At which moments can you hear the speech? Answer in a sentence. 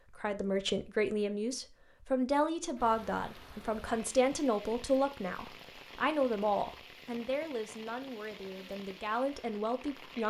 You can hear the speech from 0.1 to 10.2 s.